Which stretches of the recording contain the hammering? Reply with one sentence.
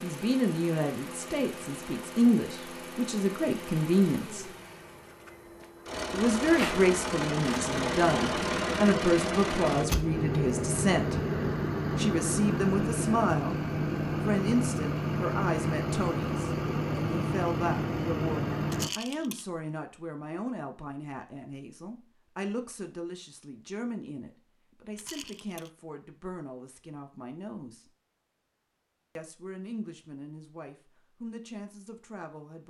You can't hear the hammering here.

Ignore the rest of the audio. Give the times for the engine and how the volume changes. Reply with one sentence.
The engine can be heard from 0.0 to 18.9 s, getting louder.